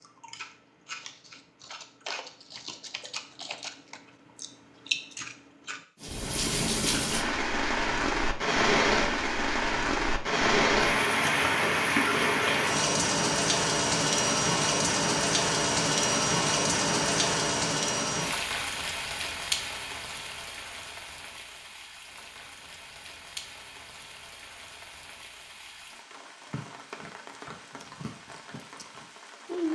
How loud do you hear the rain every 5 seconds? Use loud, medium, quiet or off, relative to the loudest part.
off, loud, loud, loud, quiet, quiet.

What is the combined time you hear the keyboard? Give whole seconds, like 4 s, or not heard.
not heard.